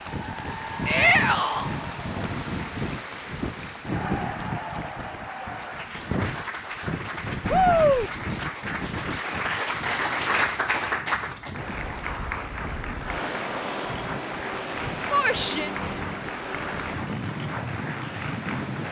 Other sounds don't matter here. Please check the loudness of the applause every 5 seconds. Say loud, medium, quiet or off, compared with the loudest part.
medium, loud, loud, medium.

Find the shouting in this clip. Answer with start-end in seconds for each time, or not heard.
0.8-1.7, 7.5-8.1, 15.1-15.7.